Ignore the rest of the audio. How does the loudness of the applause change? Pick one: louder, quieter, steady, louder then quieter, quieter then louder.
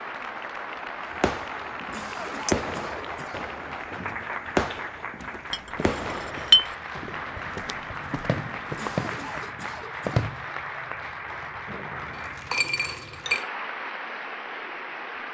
steady.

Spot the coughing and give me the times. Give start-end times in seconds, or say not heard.
1.9-3.5, 8.8-10.2.